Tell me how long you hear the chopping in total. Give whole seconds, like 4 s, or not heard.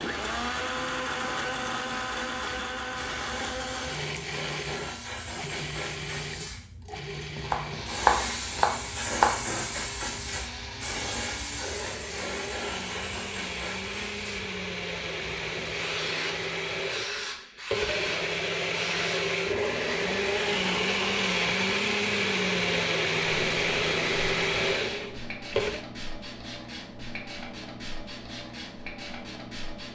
2 s.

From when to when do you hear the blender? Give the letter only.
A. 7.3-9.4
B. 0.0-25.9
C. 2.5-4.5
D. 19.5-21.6
B.